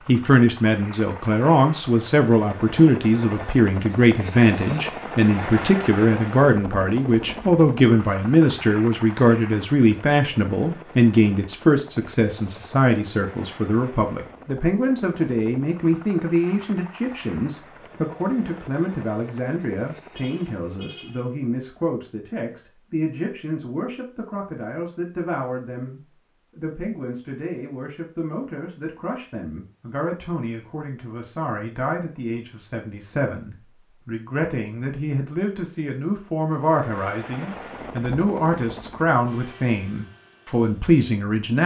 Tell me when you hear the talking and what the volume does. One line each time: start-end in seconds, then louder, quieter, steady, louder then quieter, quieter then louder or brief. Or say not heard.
0.1-41.6 quieter then louder.